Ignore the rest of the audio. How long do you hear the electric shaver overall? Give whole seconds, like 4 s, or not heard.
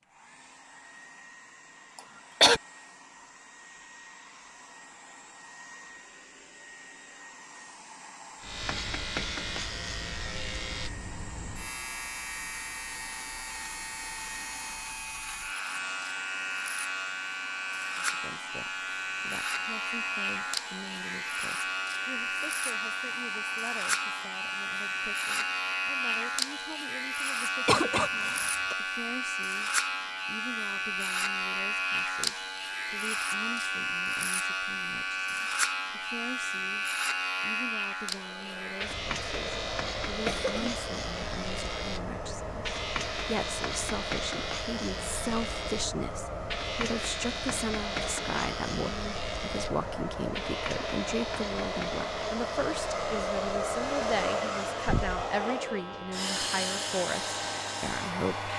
50 s.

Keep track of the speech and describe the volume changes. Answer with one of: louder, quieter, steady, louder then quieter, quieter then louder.
louder.